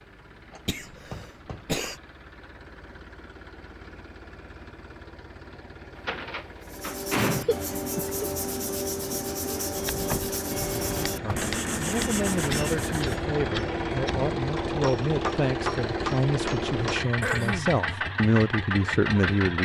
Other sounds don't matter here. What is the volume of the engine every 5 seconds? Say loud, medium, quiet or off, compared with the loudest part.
quiet, quiet, loud, loud.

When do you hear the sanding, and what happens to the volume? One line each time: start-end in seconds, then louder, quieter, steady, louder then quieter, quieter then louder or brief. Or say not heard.
6.6-13.2 steady.